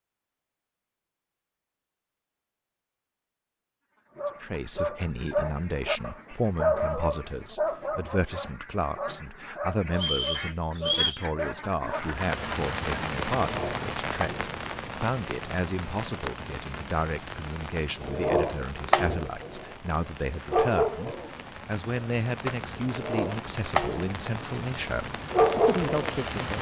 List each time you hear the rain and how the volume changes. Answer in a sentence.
You can hear the rain from 11.8 to 26.5 s, getting quieter then louder.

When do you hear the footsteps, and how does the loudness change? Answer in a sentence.
The footsteps can't be heard in this clip.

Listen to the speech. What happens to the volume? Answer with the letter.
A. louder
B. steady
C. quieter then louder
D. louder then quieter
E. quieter
B.